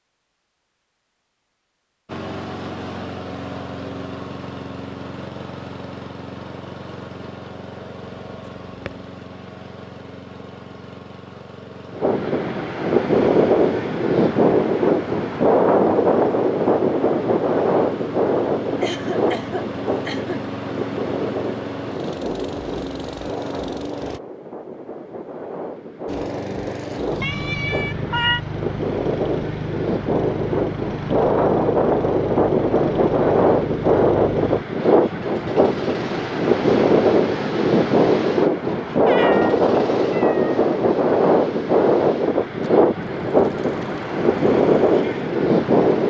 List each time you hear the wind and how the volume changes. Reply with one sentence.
The wind can be heard from 11.9 to 46.0 s, getting quieter then louder.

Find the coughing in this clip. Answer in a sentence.
You can hear the coughing from 18.8 to 20.4 s.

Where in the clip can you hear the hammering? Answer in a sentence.
You can't hear the hammering here.